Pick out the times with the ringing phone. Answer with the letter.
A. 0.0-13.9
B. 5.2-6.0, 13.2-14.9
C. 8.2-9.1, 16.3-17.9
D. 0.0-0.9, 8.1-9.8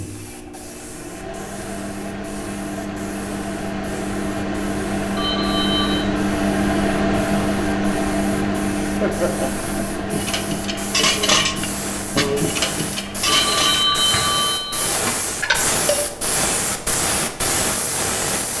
B.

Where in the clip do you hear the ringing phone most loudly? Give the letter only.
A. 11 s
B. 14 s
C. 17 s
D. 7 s
B.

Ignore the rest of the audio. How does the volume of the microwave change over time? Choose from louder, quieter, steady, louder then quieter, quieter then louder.
louder then quieter.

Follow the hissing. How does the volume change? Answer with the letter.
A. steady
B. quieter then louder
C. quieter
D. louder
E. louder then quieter
D.